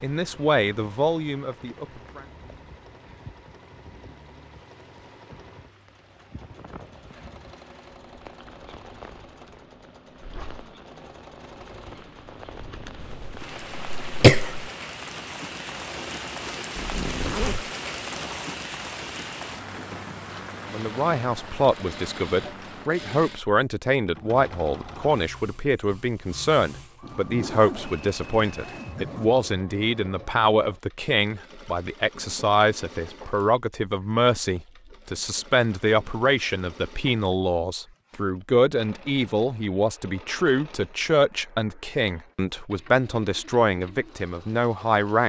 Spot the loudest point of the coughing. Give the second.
14 s.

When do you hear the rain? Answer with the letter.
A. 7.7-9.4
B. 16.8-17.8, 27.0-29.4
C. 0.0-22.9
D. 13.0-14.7
C.